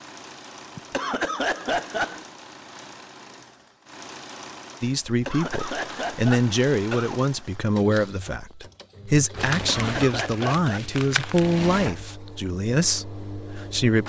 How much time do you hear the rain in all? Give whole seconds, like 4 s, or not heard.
not heard.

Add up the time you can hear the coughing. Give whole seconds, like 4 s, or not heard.
5 s.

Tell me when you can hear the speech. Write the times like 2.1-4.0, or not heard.
4.8-14.0.